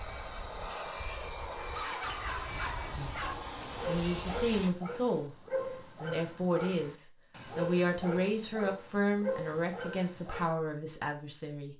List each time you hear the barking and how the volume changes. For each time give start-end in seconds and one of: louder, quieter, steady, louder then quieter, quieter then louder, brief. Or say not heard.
1.6-10.5 steady.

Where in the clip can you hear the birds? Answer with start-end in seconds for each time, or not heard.
not heard.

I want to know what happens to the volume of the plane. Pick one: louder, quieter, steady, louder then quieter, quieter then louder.
steady.